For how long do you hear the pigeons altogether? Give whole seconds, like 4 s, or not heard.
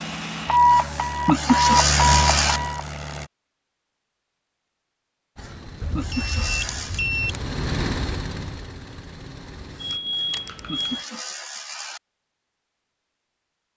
not heard.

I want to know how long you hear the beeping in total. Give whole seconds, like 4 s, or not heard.
5 s.